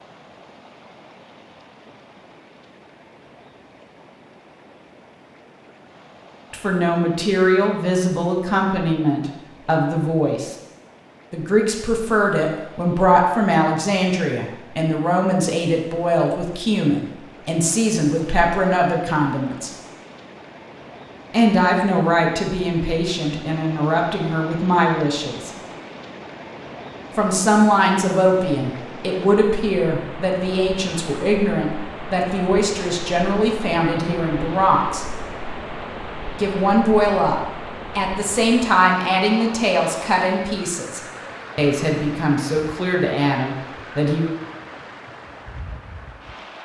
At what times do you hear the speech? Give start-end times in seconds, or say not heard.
6.5-10.6, 11.3-19.7, 21.3-25.5, 27.1-35.0, 36.4-44.3.